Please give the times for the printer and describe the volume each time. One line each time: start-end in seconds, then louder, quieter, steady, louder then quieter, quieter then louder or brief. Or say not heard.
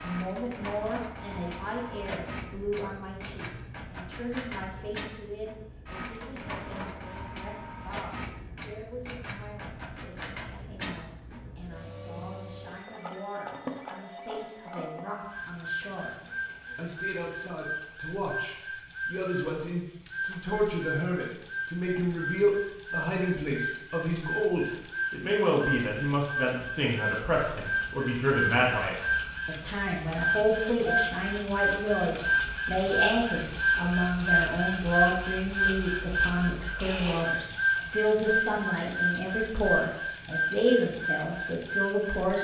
0.0-42.3 louder.